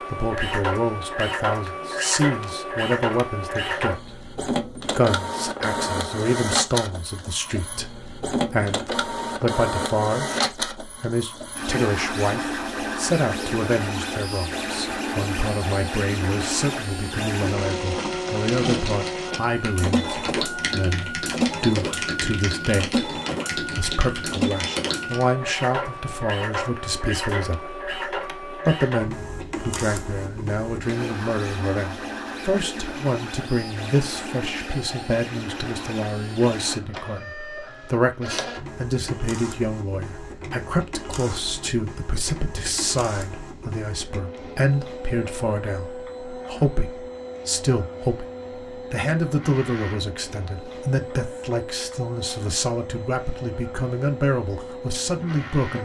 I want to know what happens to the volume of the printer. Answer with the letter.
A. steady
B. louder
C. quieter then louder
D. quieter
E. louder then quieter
D.